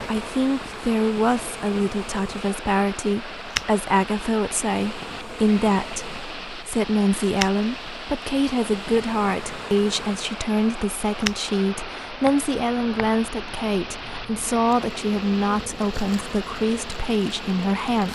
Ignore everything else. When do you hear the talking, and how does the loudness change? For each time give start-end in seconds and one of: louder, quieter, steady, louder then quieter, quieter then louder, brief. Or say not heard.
0.1-18.1 steady.